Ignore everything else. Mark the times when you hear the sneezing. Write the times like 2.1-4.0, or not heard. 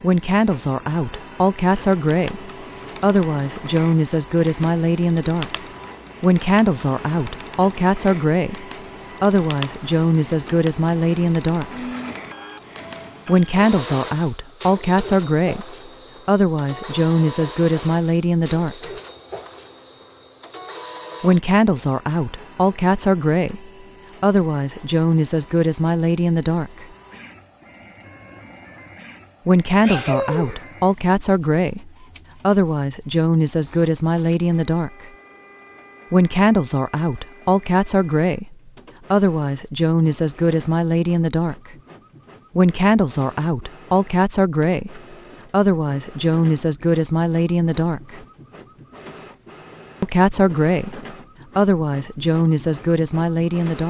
29.8-30.6.